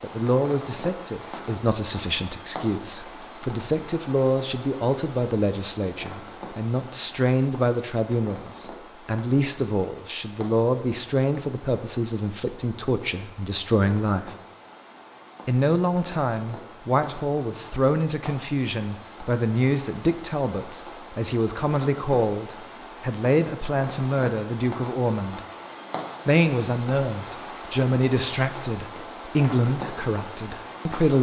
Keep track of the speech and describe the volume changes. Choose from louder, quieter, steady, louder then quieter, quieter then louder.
steady.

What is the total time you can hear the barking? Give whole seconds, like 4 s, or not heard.
not heard.